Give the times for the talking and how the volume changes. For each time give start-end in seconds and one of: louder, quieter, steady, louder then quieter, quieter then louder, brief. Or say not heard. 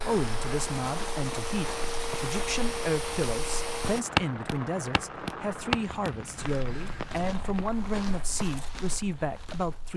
0.1-9.9 steady.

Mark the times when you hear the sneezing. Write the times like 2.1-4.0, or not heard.
not heard.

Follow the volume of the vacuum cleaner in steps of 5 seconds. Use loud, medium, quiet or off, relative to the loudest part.
loud, off.